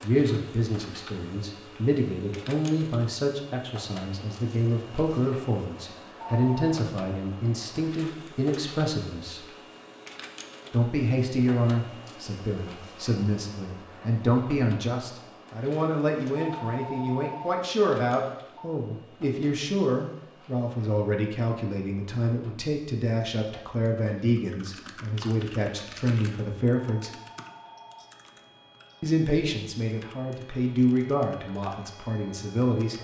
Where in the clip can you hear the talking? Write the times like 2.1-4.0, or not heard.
0.0-9.4, 10.7-27.1, 29.0-32.9.